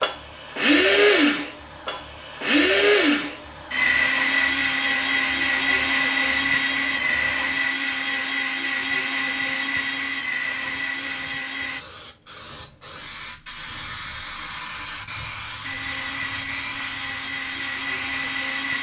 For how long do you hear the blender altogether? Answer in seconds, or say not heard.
15 s.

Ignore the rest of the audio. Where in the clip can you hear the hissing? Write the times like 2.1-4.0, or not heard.
0.0-18.7.